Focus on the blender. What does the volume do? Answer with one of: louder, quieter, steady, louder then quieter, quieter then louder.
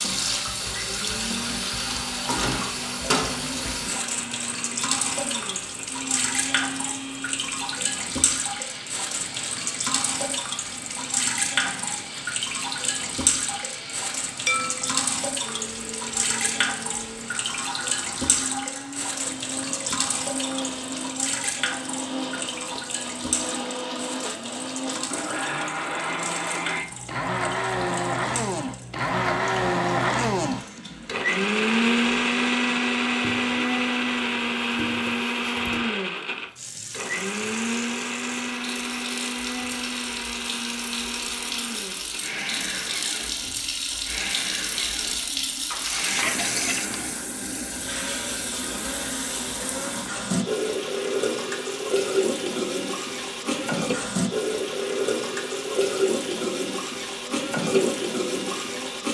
louder then quieter.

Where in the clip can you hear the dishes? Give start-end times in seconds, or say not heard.
14.4-14.9, 45.7-47.2.